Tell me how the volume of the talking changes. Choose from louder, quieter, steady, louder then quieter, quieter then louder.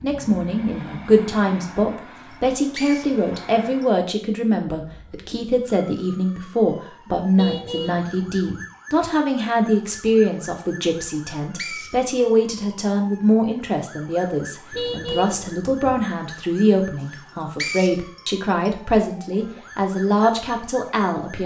steady.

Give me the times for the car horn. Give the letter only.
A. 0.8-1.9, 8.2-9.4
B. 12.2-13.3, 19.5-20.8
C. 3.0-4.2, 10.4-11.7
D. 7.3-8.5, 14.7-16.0
D.